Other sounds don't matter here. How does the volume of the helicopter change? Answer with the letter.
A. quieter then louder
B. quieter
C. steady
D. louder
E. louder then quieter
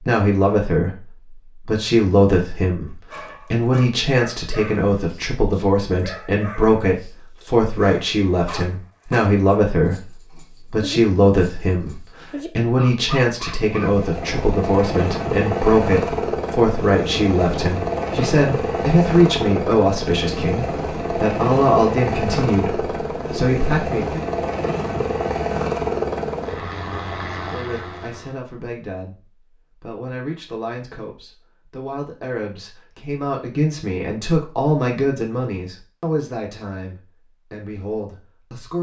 C.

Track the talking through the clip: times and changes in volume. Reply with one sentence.
You can hear the talking from 0.0 to 24.2 s, at a steady volume; and from 27.4 to 38.7 s, getting louder then quieter.